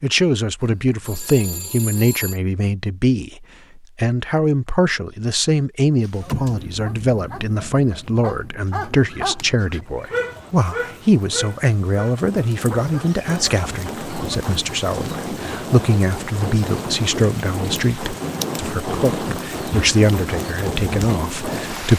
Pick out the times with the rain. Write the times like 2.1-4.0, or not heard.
6.0-21.9.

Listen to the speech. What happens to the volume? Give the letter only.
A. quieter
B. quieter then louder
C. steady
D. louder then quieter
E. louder
C.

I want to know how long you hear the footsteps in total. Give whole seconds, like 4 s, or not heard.
not heard.